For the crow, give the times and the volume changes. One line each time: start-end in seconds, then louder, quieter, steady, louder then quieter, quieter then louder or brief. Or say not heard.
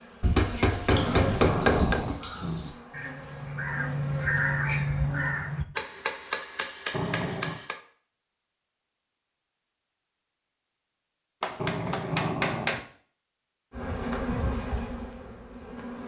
0.0-5.7 louder.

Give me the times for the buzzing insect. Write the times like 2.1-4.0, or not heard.
0.0-5.5, 13.7-16.0.